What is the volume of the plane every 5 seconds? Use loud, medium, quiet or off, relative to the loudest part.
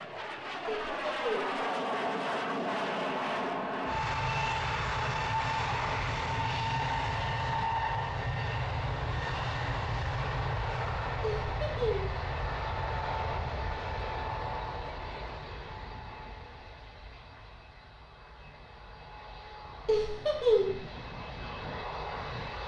loud, loud, loud, quiet, medium.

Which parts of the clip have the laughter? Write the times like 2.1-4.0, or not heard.
0.7-1.6, 11.2-12.2, 19.9-20.8.